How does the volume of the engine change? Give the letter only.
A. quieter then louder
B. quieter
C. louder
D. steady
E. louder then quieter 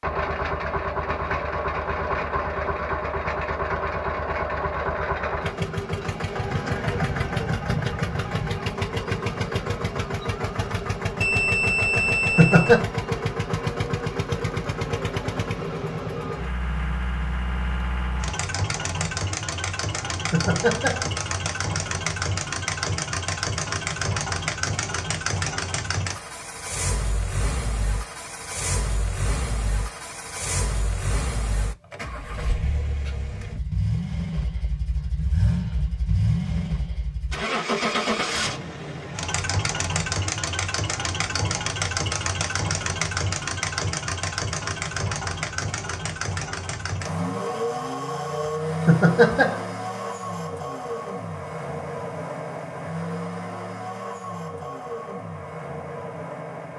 D.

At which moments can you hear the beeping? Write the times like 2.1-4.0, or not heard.
11.2-12.7.